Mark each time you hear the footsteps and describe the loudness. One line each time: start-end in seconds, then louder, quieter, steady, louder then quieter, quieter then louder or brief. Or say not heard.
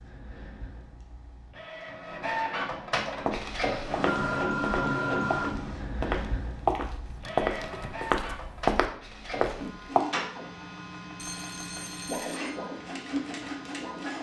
3.2-10.0 louder.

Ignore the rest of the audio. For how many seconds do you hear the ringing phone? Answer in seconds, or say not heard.
3 s.